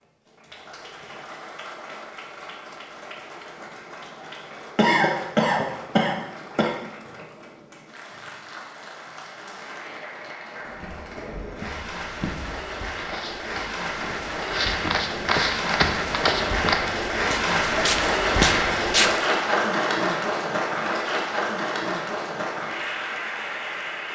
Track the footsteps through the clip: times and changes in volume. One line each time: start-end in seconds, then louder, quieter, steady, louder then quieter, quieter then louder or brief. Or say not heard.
10.7-19.2 louder.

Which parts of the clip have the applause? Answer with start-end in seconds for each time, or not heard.
0.0-24.0.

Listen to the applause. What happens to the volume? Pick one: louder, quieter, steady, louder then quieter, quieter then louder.
louder.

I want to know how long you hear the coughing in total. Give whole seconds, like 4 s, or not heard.
2 s.